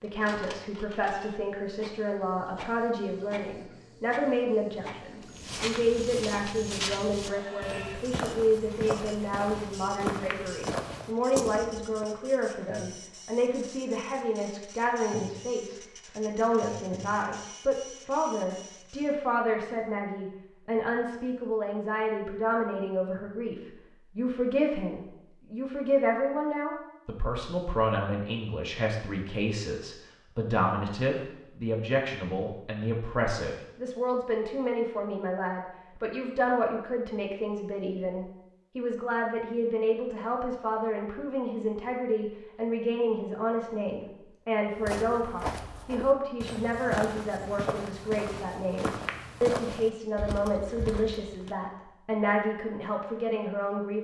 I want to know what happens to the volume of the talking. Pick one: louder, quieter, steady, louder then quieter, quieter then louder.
steady.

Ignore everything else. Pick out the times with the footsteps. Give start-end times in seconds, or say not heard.
5.2-12.1, 44.8-51.5.